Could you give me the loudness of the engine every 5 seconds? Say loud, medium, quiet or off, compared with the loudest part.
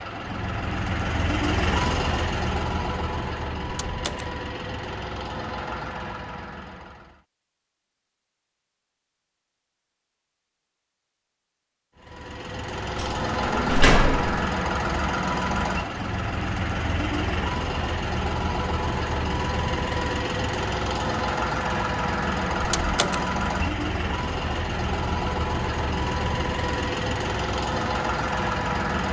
loud, medium, loud, loud, loud, loud.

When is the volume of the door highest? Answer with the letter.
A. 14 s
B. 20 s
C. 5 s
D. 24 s
A.